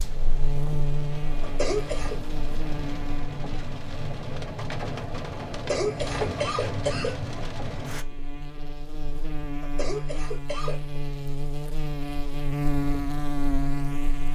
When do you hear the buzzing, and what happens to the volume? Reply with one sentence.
You can hear the buzzing from 0.0 to 14.3 s, getting quieter then louder.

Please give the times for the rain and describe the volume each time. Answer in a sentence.
The rain can be heard from 0.0 to 8.1 s, getting louder.